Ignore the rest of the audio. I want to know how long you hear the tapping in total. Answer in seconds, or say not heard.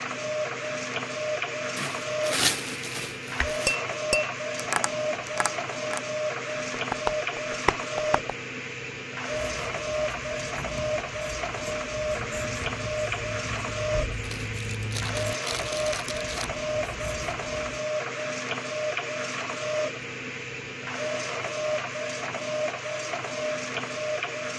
5 s.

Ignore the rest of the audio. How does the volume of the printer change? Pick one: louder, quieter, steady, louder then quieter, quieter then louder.
steady.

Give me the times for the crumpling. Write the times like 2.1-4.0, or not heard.
1.8-3.8, 14.2-16.5.